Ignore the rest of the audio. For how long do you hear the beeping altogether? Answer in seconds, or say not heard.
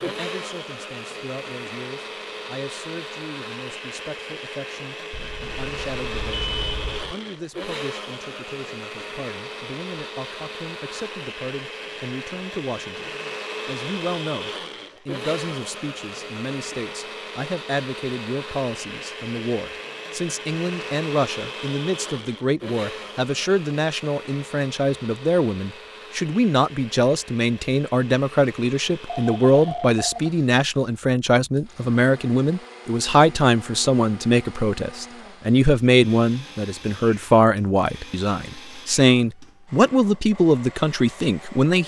3 s.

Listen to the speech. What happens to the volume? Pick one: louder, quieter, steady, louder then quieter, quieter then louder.
louder.